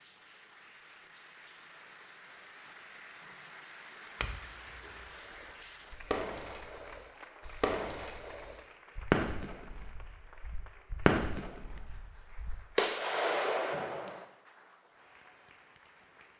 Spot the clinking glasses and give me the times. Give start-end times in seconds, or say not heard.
4.2-5.1.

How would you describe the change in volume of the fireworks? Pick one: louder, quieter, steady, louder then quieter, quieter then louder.
louder.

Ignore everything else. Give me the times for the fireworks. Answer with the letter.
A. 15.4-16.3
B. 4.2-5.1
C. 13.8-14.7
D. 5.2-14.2
D.